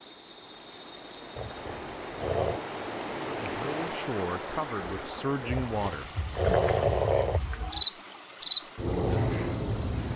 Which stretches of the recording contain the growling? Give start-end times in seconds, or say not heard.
1.4-2.6, 5.6-7.4.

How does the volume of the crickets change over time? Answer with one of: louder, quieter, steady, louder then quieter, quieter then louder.
quieter then louder.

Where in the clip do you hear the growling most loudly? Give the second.
7 s.